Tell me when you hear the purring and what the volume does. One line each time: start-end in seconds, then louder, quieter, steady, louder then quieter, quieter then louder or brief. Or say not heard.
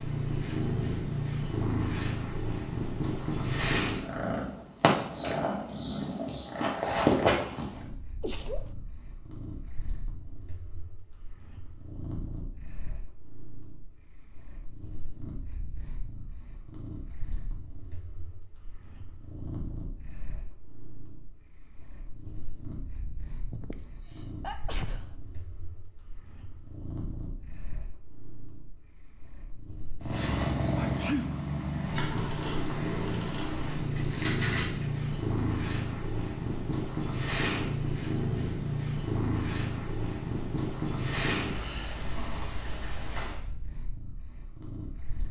0.0-45.2 quieter then louder.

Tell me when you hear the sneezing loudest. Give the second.
31 s.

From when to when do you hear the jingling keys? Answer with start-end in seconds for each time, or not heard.
33.8-35.4.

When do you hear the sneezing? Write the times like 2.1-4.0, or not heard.
8.2-8.7, 23.5-25.0, 30.8-31.4.